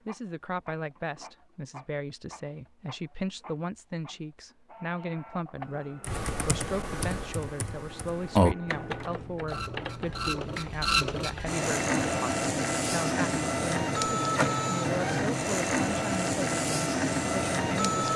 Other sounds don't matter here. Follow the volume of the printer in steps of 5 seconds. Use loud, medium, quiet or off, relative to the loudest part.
quiet, quiet, loud, loud.